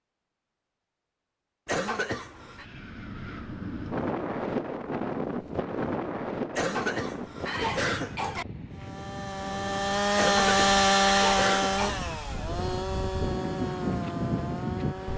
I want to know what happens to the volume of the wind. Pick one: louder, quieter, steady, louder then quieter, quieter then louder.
quieter then louder.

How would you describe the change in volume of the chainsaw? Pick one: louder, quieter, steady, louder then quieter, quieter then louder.
louder then quieter.